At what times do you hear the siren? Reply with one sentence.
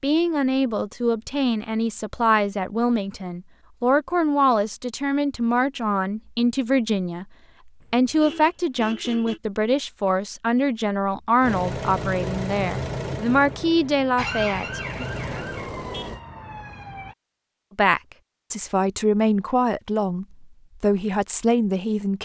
The siren can be heard from 14.2 to 17.1 s.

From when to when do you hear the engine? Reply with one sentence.
The engine can be heard from 11.4 to 16.2 s.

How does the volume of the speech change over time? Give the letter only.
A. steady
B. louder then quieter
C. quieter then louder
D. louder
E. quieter
A.